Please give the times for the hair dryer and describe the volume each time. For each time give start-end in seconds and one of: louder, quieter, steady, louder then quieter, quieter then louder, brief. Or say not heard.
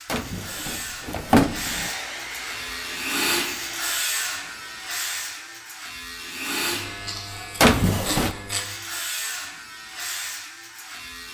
1.5-5.8 quieter.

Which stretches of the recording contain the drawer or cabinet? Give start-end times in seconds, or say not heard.
0.1-1.9, 7.6-8.3.